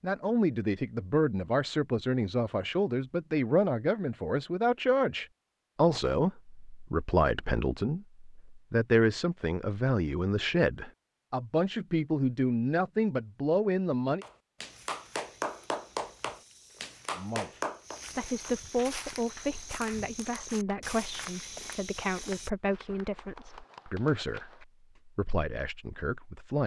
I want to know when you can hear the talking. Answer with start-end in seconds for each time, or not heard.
0.0-14.2, 17.1-26.6.